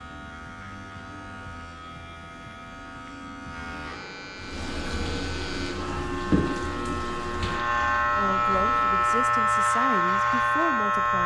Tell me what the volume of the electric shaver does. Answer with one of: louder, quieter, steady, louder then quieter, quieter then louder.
louder.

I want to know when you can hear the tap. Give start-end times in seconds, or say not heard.
4.3-9.2.